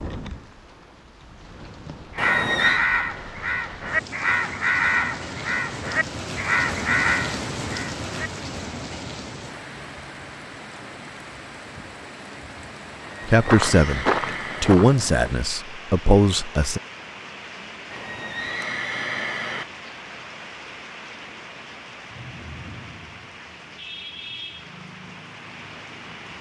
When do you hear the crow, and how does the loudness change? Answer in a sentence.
The crow can be heard from 2.1 to 8.1 s, at a steady volume.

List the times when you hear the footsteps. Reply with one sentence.
You can hear the footsteps from 13.4 to 15.3 s.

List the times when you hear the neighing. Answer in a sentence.
The neighing can be heard from 2.1 to 2.9 s, from 13.0 to 14.8 s and from 17.9 to 19.6 s.